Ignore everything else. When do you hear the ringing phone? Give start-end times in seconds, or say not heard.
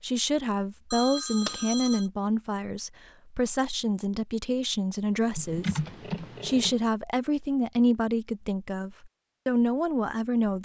0.9-2.0, 6.0-6.8.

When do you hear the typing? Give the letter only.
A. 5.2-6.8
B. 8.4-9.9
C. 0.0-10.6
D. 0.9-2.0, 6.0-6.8
A.